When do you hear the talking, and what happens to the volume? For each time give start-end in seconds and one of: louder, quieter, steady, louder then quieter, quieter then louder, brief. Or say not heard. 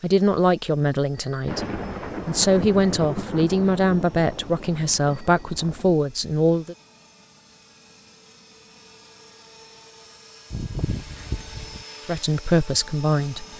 0.0-6.8 steady
12.1-13.5 brief.